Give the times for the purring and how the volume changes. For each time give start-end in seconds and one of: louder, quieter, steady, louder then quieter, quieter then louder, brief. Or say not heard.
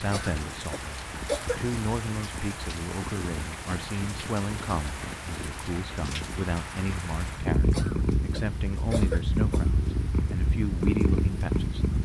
0.0-12.0 louder.